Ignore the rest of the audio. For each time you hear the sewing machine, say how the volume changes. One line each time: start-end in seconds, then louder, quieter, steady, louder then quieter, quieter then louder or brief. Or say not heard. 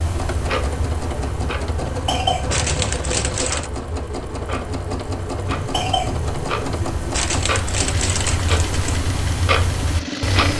0.0-10.5 steady.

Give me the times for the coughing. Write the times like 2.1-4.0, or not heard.
1.8-3.3, 5.5-7.0.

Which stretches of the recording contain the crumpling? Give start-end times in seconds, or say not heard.
2.5-3.7, 7.1-9.0.